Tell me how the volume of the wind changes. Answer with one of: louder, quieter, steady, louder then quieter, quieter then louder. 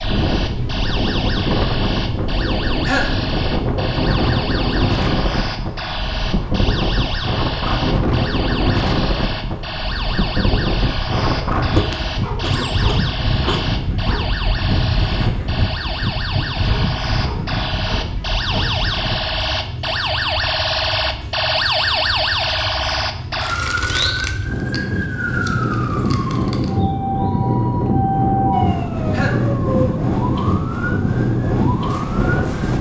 quieter then louder.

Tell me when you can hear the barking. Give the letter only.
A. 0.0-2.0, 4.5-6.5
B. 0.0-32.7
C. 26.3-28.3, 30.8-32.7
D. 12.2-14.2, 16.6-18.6
D.